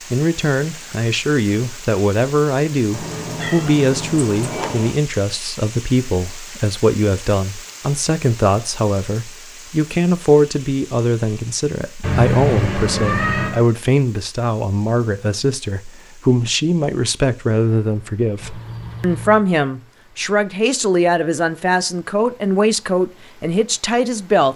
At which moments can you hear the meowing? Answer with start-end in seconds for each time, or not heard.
2.9-4.9, 12.0-13.7, 18.4-19.4.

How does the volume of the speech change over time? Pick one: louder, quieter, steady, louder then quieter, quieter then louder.
steady.